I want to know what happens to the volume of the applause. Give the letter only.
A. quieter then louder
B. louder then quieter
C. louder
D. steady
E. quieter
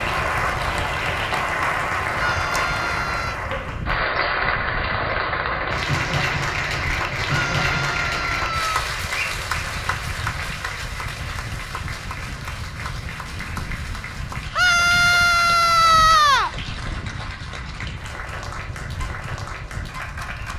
E.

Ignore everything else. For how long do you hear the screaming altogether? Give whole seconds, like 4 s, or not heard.
5 s.